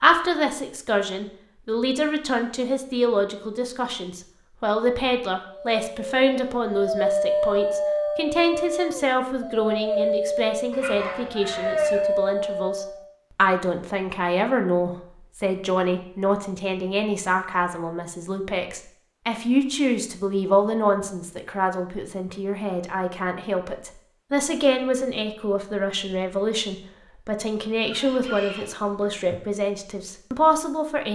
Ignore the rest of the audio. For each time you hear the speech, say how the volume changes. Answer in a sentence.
The speech can be heard from 0.0 to 31.0 s, at a steady volume.